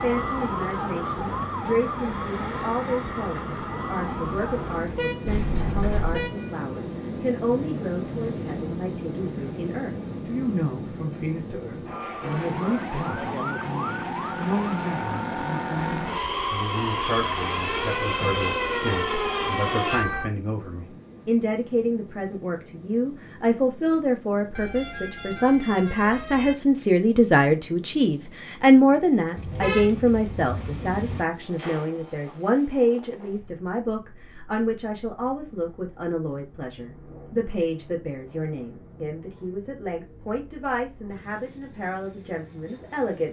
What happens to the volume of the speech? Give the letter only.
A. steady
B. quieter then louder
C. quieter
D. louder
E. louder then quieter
E.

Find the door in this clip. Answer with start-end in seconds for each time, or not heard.
5.2-6.2, 17.0-18.6, 31.4-32.4.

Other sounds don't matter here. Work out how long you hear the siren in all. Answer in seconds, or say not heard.
13 s.